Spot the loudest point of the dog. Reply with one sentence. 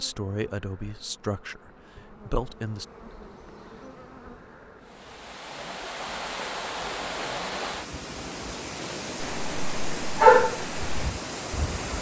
The loudest moment of the dog is at 10 seconds.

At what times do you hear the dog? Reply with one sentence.
You can hear the dog from 9.2 to 11.9 s.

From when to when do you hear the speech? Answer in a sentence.
You can hear the speech from 0.0 to 2.9 s.